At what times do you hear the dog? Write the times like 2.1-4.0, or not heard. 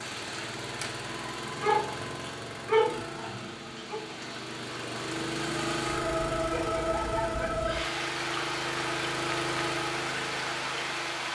1.6-4.0, 6.5-8.0.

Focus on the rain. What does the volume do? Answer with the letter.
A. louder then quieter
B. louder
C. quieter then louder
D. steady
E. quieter
B.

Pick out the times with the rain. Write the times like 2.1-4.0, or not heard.
0.0-11.3.